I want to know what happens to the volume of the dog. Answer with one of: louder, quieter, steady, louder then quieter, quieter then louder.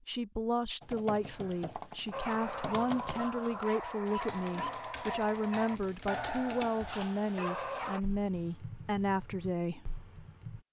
steady.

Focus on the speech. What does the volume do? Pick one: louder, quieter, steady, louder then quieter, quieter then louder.
steady.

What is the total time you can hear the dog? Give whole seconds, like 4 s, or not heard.
6 s.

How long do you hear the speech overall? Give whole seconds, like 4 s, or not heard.
10 s.